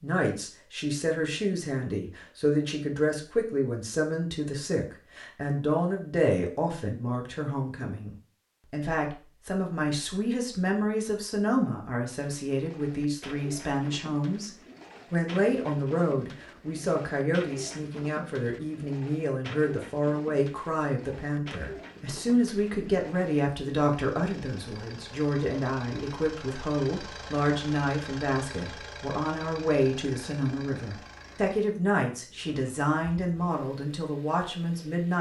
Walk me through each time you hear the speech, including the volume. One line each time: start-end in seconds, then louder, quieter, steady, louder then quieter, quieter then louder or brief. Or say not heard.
0.0-35.1 steady.